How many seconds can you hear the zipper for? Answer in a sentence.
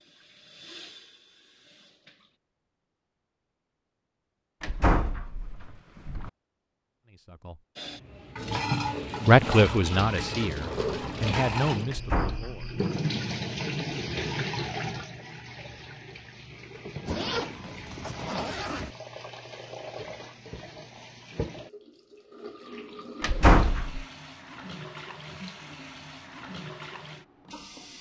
You can hear the zipper for 3 seconds altogether.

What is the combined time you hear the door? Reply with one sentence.
The door can be heard for 3 seconds in total.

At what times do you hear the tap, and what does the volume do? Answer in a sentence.
You can hear the tap briefly from 0.0 to 2.4 s; and from 7.8 to 27.9 s, getting quieter.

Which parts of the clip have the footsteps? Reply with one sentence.
You can't hear the footsteps here.